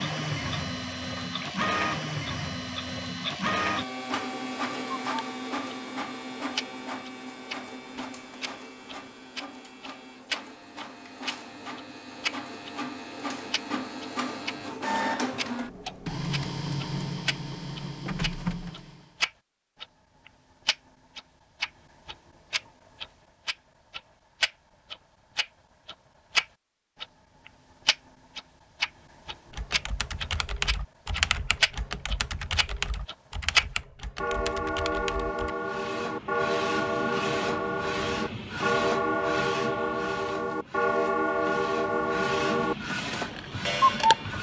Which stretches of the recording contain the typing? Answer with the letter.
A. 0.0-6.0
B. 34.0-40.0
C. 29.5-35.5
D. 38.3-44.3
C.